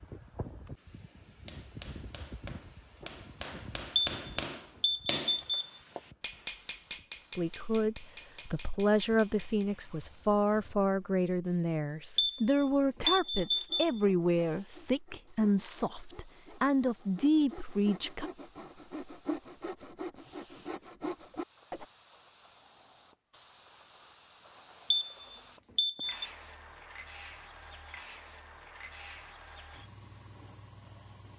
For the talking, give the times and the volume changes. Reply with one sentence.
You can hear the talking from 7.3 to 18.2 s, at a steady volume.